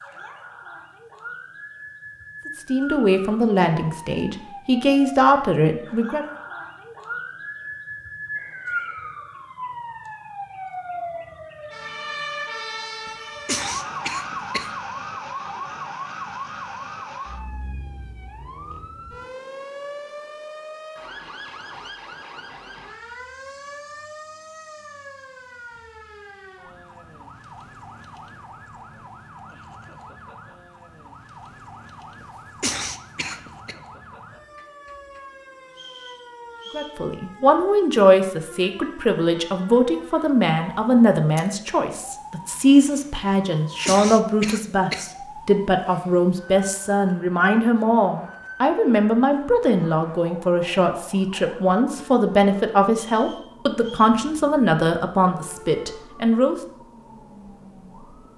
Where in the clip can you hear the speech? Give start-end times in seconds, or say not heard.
2.5-6.2, 36.7-56.5.